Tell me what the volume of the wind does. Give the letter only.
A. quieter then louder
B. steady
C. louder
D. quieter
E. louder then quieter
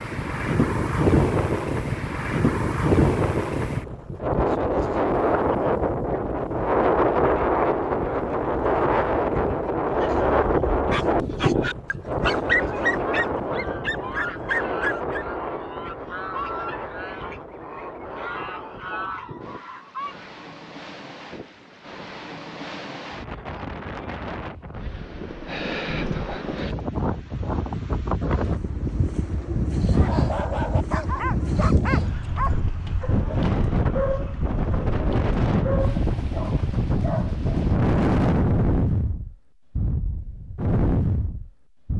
A.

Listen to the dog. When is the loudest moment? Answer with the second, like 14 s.
12 s.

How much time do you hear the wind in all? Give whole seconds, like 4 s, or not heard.
42 s.